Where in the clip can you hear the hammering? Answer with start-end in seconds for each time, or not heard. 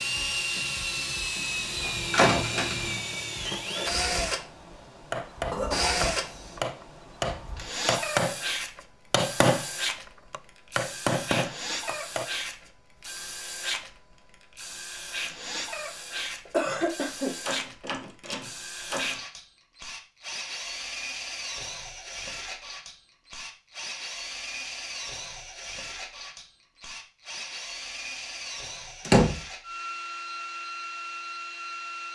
5.1-9.7, 10.3-12.3.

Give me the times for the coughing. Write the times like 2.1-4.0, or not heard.
5.5-6.6, 16.4-17.4.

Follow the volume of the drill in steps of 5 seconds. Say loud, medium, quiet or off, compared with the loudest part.
loud, loud, medium, medium, medium, medium, medium.